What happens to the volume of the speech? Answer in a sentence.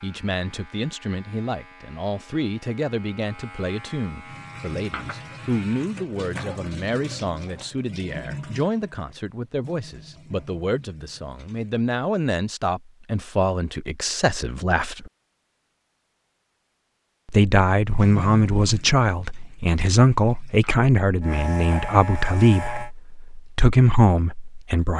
The volume of the speech goes up.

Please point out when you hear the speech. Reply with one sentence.
You can hear the speech from 0.0 to 15.1 s and from 17.2 to 24.9 s.